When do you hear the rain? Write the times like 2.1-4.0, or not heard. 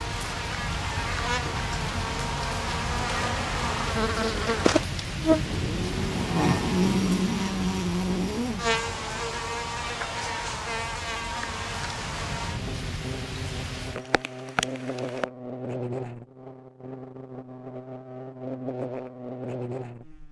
0.0-15.3.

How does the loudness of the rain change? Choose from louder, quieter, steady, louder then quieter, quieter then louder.
quieter then louder.